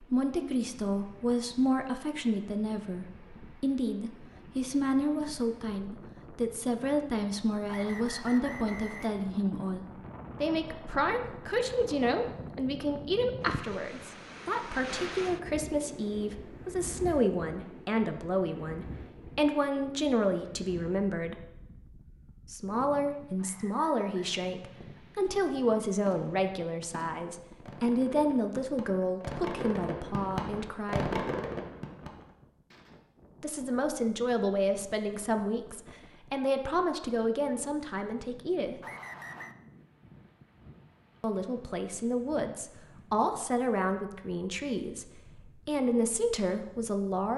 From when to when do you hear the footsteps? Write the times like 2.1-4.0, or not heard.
not heard.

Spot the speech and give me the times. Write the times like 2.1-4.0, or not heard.
0.0-21.4, 22.5-31.1, 33.4-38.8, 41.2-47.3.